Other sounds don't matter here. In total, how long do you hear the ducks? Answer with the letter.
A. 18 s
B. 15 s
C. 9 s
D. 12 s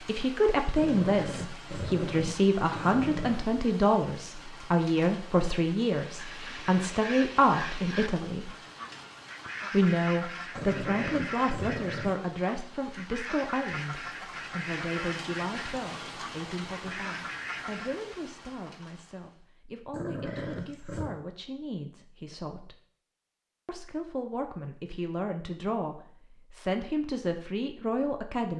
D.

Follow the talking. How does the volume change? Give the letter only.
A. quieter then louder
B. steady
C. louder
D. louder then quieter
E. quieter
A.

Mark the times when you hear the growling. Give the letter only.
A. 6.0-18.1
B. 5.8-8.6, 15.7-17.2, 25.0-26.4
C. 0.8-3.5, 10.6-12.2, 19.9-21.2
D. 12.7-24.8
C.